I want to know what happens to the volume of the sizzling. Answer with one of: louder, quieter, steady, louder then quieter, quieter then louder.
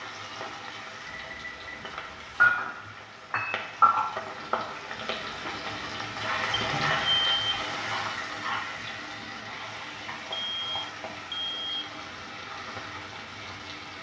quieter.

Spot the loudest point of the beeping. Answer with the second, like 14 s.
7 s.